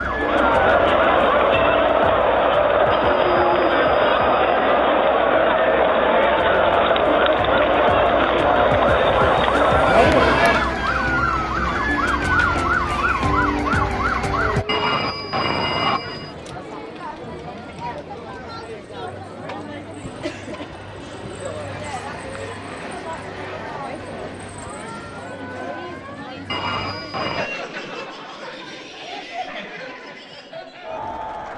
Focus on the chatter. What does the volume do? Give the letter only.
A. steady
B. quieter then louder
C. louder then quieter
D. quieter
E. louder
D.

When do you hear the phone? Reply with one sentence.
You can hear the phone from 2.9 to 4.8 s, from 14.7 to 16.4 s and from 26.4 to 27.5 s.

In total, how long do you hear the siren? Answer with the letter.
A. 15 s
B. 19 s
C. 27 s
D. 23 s
A.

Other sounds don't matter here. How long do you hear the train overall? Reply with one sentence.
The train can be heard for 8 seconds in total.